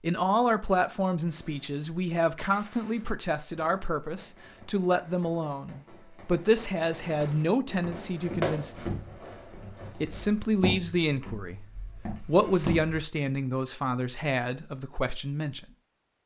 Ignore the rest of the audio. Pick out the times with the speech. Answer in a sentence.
You can hear the speech from 0.0 to 9.0 s and from 10.0 to 15.7 s.